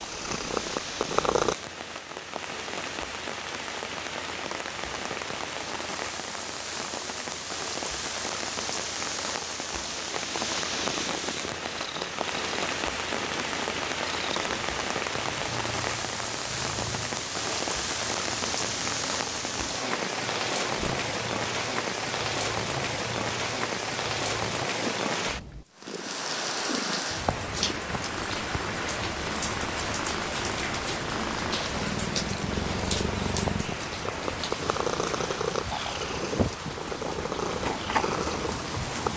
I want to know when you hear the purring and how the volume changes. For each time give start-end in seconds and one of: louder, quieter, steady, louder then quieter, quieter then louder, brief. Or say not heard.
0.0-1.6 brief
10.6-39.1 louder.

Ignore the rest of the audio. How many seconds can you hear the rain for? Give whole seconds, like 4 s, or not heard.
39 s.